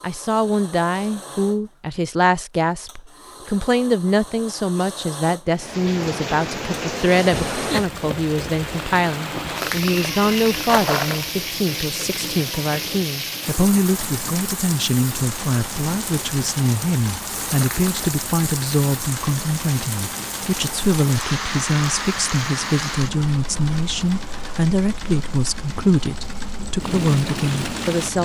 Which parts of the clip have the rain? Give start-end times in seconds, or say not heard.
5.5-28.2.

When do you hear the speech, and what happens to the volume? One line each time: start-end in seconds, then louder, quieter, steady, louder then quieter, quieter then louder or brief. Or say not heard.
0.0-28.2 steady.